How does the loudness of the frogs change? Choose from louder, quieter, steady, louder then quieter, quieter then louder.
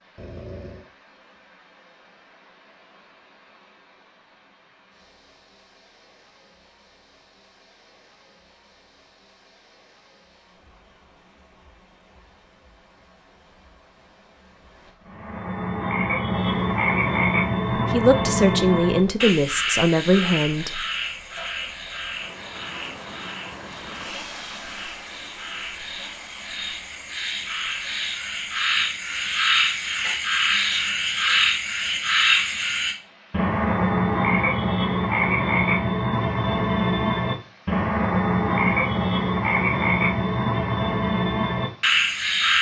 quieter then louder.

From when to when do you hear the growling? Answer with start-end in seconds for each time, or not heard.
0.1-0.9.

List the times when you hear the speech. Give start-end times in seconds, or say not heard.
17.8-20.8.